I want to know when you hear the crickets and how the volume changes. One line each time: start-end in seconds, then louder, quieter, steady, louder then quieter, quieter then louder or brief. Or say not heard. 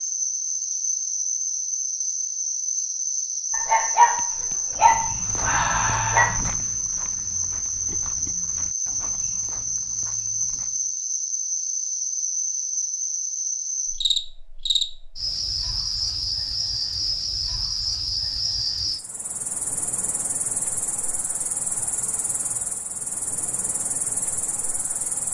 0.0-25.2 quieter.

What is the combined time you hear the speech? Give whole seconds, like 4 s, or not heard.
not heard.